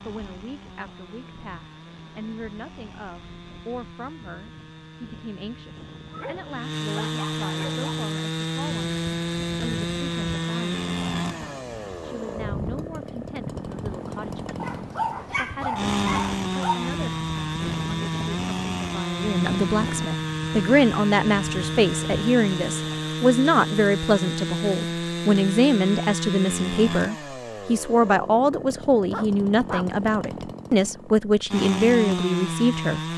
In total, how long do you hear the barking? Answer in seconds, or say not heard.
5 s.